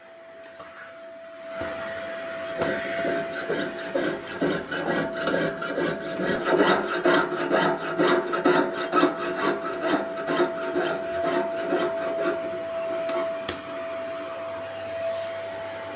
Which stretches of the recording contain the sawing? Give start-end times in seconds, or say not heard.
2.4-13.3.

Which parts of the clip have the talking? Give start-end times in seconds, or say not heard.
not heard.